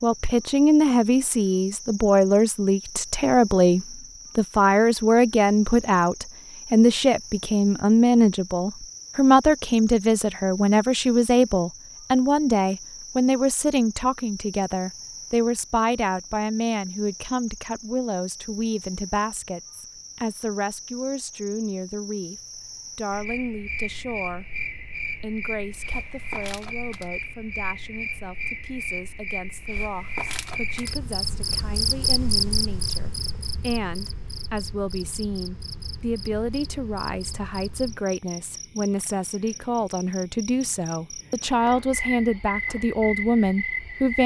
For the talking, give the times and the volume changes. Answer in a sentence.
You can hear the talking from 0.0 to 24.4 s, getting quieter; and from 25.1 to 44.2 s, getting louder.